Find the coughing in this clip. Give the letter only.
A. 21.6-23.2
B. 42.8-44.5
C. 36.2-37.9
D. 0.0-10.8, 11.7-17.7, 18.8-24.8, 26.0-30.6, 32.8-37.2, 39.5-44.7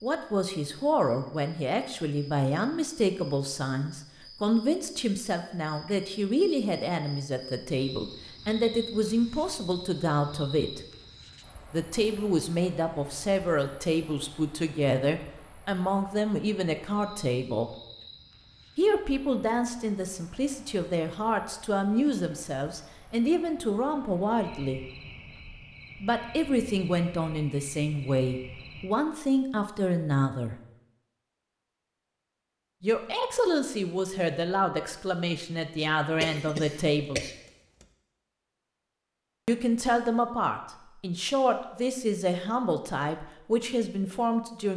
C.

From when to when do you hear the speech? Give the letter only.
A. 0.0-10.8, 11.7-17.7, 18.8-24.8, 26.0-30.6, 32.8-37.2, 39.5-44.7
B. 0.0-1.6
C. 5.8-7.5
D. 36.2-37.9
A.